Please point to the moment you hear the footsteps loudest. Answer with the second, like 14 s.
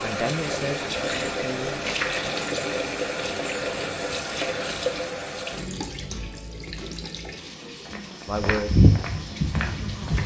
9 s.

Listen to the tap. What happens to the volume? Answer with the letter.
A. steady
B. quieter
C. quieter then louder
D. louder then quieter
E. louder
B.